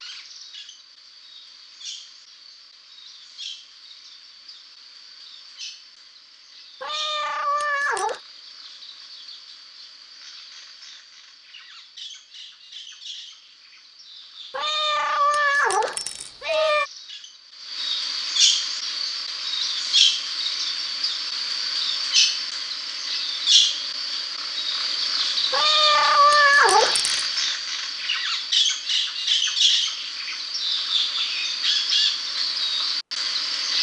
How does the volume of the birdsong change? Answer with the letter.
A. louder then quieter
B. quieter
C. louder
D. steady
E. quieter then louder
C.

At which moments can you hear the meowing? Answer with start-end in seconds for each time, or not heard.
6.8-8.2, 14.5-16.9, 25.5-27.2.